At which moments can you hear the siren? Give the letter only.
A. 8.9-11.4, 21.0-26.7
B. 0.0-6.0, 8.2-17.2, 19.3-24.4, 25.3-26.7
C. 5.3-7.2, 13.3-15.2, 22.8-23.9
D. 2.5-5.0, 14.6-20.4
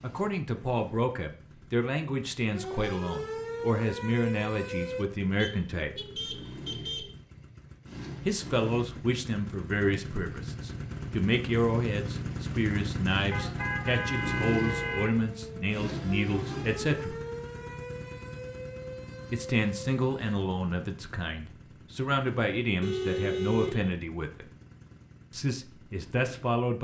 D.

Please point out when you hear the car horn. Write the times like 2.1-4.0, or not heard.
5.3-7.2, 13.3-15.2, 22.8-23.9.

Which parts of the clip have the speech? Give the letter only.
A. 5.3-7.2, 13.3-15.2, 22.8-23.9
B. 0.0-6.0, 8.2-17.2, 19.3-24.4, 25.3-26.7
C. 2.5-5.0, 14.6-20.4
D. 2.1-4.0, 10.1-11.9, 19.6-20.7
B.